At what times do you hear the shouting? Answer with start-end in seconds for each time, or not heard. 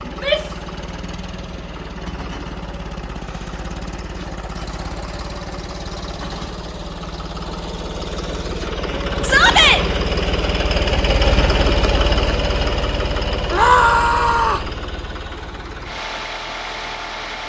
0.1-0.6, 9.2-9.8, 13.5-14.7.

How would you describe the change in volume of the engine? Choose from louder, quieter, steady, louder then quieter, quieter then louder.
louder then quieter.